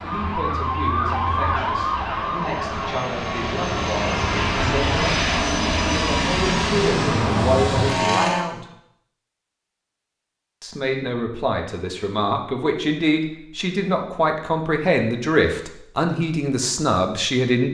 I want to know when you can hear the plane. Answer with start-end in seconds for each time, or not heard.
0.0-8.4.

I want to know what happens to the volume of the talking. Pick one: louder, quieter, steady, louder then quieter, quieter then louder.
louder.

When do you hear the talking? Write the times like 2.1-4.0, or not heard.
0.0-8.7, 10.6-17.6.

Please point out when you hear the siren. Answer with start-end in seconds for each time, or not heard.
0.0-3.0.